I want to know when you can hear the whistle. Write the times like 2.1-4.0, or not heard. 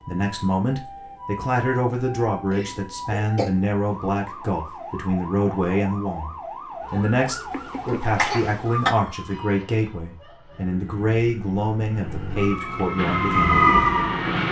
not heard.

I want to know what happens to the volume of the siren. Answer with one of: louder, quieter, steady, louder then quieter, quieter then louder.
louder.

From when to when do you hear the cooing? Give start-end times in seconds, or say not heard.
not heard.